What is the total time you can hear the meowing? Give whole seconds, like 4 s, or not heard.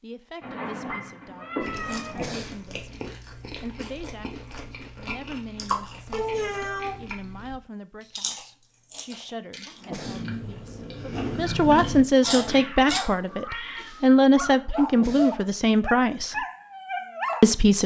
4 s.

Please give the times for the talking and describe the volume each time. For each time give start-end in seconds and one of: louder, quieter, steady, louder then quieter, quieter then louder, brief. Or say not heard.
0.0-16.4 louder
17.4-17.8 brief.